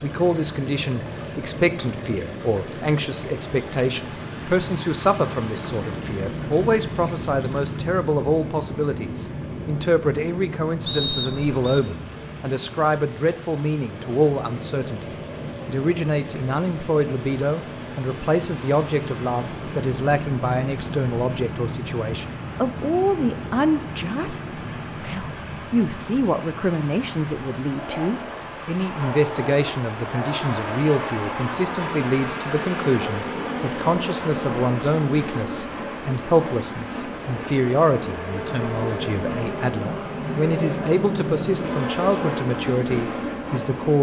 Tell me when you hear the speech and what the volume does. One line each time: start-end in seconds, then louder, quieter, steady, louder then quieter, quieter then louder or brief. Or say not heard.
0.0-43.9 steady.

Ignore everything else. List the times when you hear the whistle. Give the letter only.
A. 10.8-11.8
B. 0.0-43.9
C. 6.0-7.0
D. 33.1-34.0
A.